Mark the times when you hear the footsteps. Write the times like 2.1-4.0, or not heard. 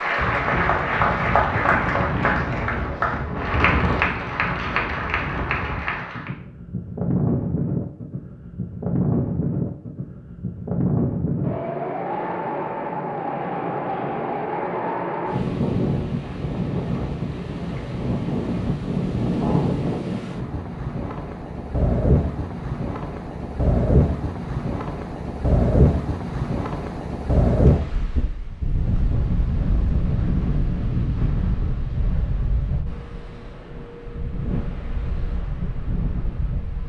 not heard.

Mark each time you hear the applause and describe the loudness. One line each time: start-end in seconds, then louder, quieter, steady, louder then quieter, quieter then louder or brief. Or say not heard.
0.0-6.3 quieter.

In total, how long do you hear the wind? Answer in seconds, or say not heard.
37 s.